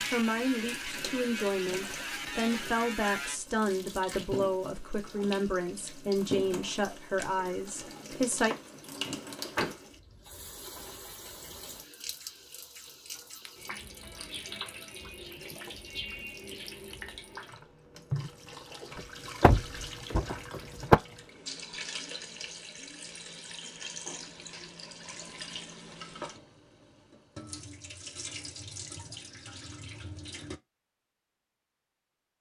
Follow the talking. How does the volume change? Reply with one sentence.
The loudness of the talking stays about the same.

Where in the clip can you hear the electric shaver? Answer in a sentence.
You can hear the electric shaver from 0.0 to 3.4 s.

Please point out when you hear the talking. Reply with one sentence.
You can hear the talking from 0.1 to 8.6 s.